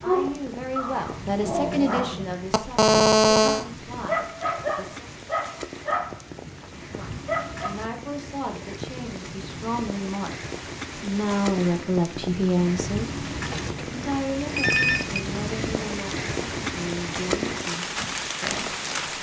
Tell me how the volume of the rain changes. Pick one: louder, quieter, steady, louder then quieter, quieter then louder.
louder.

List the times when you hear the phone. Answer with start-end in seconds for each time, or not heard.
2.5-3.6, 13.5-15.2.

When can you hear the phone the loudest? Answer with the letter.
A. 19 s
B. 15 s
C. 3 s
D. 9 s
C.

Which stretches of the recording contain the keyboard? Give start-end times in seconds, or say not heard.
not heard.